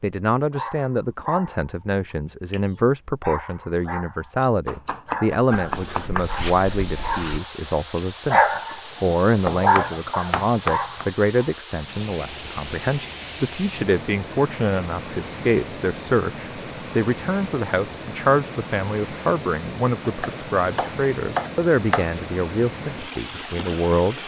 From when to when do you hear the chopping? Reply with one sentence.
You can hear the chopping from 4.7 to 6.2 s, from 9.4 to 11.1 s and from 20.0 to 22.2 s.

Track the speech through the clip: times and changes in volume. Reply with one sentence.
The speech can be heard from 0.0 to 24.2 s, at a steady volume.